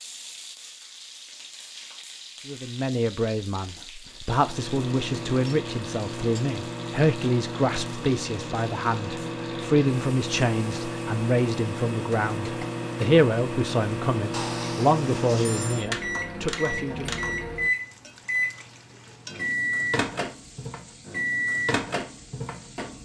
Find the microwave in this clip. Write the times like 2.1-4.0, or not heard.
4.3-22.9.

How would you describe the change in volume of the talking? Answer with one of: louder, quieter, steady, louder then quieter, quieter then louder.
steady.